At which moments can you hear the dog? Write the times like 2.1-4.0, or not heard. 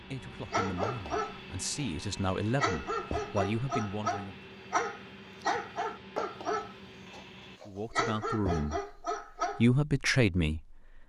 0.5-9.7.